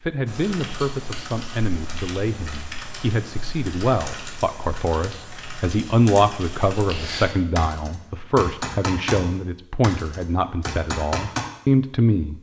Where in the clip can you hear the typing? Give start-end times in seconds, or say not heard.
0.2-11.4.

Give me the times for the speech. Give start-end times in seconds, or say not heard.
0.0-12.3.